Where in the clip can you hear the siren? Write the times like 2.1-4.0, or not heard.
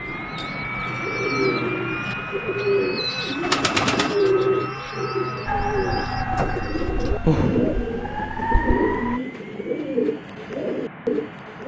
5.5-9.2.